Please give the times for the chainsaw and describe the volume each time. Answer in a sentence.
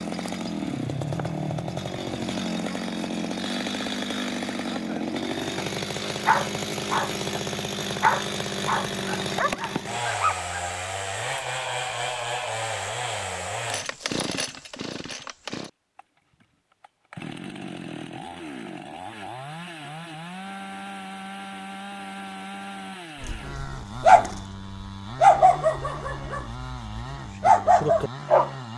You can hear the chainsaw from 0.0 to 28.7 s, getting quieter.